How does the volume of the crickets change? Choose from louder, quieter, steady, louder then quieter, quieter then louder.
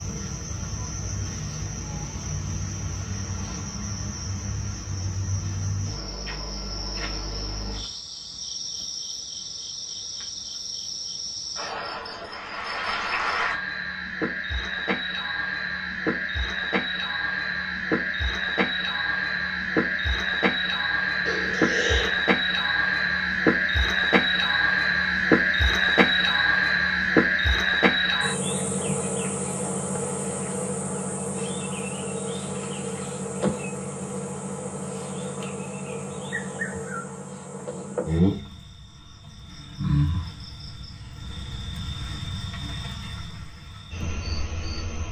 louder then quieter.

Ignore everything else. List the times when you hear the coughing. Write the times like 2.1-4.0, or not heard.
21.2-22.1.